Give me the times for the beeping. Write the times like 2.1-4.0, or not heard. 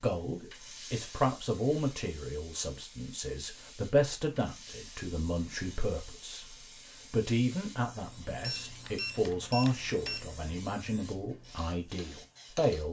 8.4-10.2.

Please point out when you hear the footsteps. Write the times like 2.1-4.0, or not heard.
not heard.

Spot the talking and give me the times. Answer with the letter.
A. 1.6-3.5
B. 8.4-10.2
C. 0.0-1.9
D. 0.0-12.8
D.